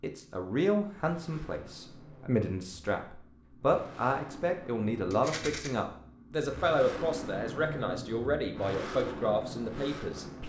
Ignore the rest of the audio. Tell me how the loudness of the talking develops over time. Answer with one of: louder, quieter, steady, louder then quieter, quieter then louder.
steady.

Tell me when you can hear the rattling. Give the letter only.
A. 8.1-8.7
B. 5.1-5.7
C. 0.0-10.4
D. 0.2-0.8
B.